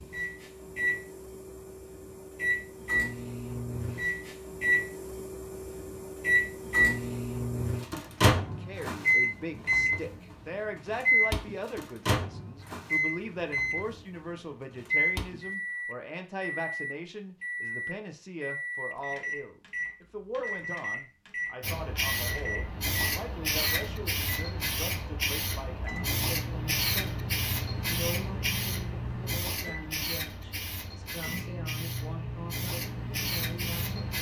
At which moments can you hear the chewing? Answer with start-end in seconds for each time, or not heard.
not heard.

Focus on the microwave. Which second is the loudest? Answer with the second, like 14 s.
9 s.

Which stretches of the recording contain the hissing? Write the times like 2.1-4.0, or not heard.
21.6-34.1.